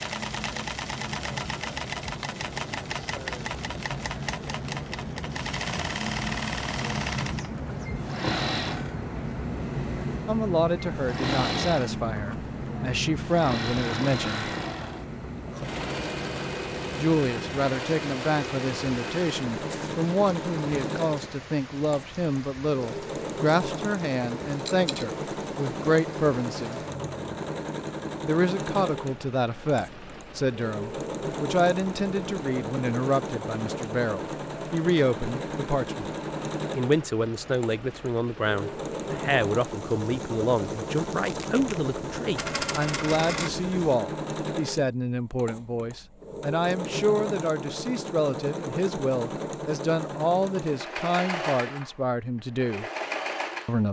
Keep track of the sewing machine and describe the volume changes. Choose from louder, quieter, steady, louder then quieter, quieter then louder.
steady.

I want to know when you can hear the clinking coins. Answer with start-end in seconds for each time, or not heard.
24.6-25.1, 42.4-43.5.